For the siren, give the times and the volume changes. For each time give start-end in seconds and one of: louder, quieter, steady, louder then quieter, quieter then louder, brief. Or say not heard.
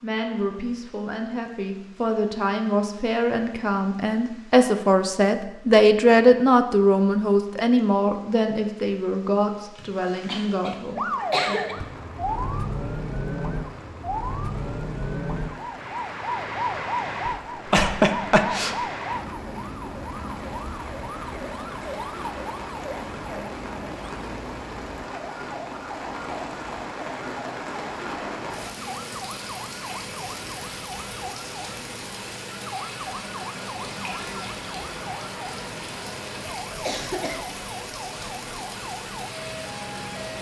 10.9-40.3 quieter.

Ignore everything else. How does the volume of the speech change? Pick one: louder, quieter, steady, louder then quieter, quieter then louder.
louder then quieter.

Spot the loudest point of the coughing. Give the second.
18 s.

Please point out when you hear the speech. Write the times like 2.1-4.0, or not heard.
0.0-11.7.